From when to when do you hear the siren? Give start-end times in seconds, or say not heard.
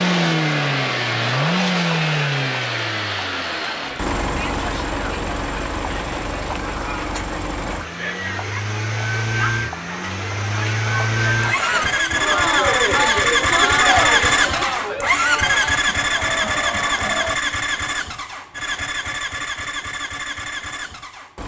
not heard.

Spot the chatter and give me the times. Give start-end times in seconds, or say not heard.
0.0-17.4.